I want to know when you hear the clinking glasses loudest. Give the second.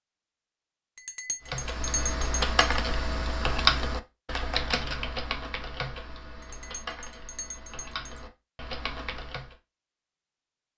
2 s.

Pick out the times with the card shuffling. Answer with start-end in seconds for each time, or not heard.
not heard.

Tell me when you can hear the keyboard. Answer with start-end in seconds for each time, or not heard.
1.4-9.6.